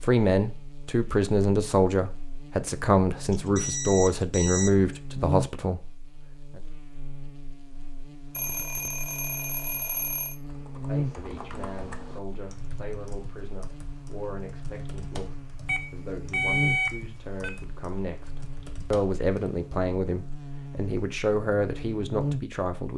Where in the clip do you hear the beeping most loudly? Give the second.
17 s.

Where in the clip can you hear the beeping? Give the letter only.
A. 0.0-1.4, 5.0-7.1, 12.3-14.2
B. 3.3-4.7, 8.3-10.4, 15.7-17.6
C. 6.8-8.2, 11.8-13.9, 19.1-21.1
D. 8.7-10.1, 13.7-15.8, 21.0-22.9
B.